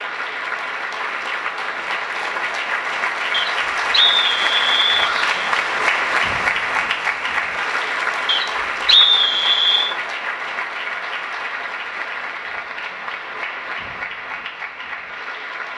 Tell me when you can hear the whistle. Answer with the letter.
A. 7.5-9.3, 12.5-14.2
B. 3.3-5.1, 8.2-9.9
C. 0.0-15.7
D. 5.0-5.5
B.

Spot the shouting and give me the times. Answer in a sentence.
You can hear the shouting from 5.0 to 5.5 s.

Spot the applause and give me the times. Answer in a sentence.
The applause can be heard from 0.0 to 15.7 s.